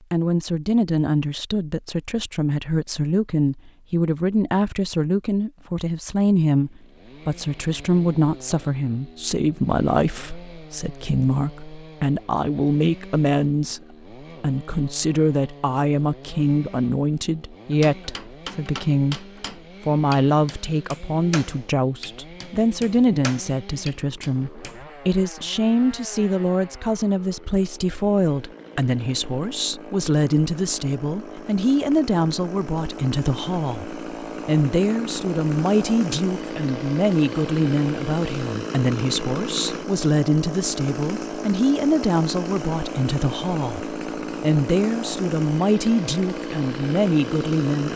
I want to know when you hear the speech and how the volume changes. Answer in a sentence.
The speech can be heard from 0.1 to 47.9 s, at a steady volume.